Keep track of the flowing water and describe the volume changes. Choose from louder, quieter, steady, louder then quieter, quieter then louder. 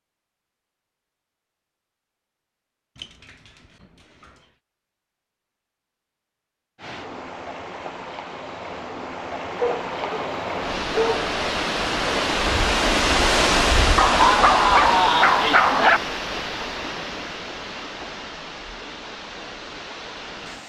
louder then quieter.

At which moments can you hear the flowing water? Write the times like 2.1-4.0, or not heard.
6.8-20.6.